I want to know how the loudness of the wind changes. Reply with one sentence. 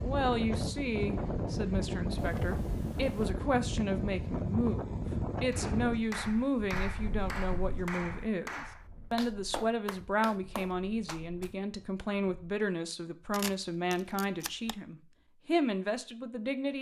The volume of the wind goes down.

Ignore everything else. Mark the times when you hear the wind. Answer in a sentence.
You can hear the wind from 0.0 to 12.5 s.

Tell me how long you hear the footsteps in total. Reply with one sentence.
You can't hear the footsteps here.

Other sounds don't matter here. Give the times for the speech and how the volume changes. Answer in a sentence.
You can hear the speech from 0.0 to 16.7 s, at a steady volume.